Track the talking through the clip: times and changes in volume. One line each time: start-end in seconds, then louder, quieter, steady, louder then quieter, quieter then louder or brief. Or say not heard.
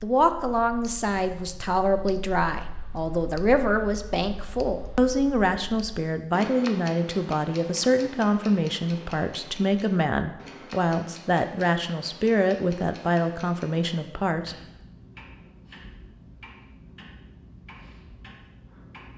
0.0-14.6 steady.